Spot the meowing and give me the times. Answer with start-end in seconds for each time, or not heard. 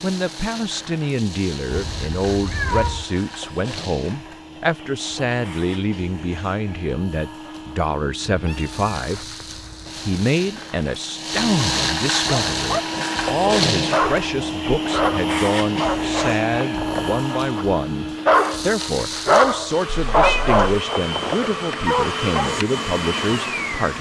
1.7-3.1, 8.2-10.1, 20.1-20.6.